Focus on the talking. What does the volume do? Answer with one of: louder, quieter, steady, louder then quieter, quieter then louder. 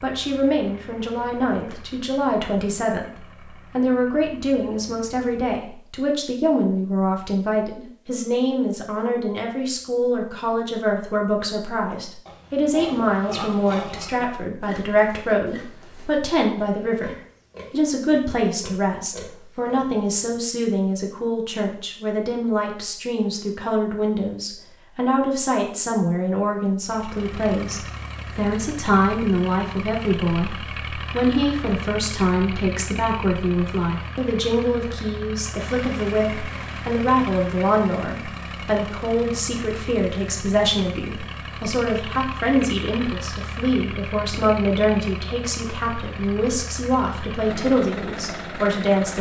steady.